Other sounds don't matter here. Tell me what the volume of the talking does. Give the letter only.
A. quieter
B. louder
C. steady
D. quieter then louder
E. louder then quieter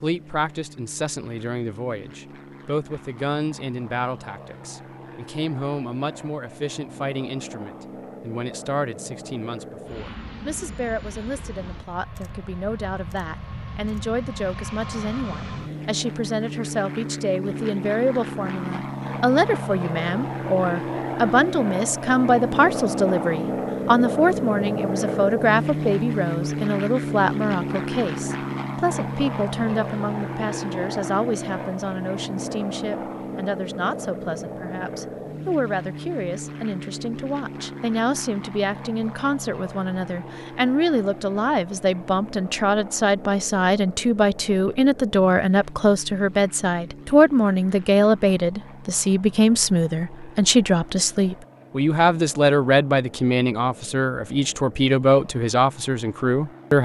B.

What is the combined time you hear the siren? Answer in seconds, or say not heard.
not heard.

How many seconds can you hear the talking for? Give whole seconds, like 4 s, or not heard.
57 s.